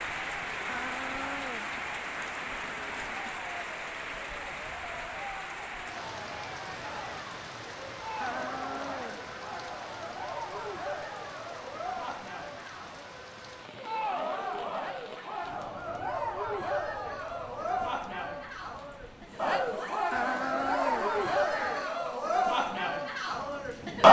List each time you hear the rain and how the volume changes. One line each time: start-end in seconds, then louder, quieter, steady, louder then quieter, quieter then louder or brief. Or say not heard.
0.0-23.8 quieter.